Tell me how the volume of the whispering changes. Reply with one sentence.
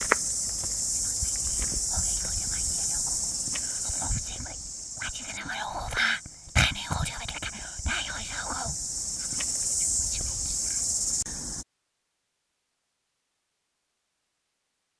The loudness of the whispering goes up, then down.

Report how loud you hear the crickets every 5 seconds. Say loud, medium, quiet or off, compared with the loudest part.
loud, medium, loud.